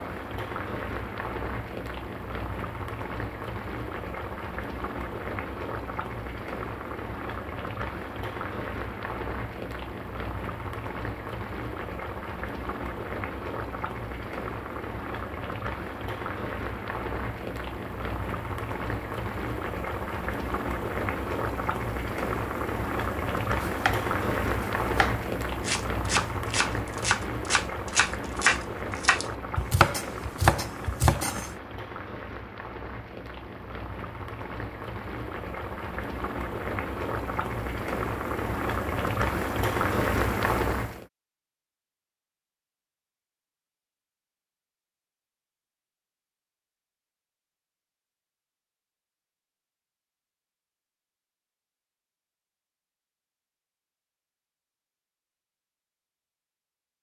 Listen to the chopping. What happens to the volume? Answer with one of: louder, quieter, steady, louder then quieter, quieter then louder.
louder.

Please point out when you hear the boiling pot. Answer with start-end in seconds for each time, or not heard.
0.0-41.0.